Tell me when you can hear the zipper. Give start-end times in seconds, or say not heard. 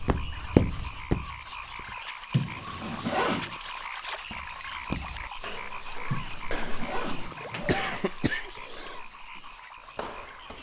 2.3-3.6, 6.1-8.0.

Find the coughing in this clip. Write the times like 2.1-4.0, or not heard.
7.7-9.0.